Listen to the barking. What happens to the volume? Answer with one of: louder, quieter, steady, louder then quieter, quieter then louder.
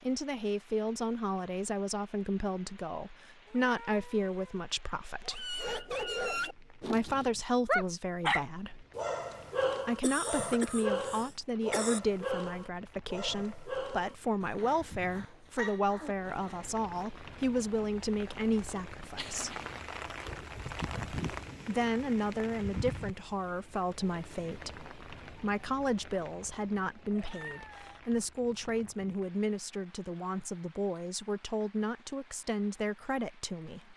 quieter.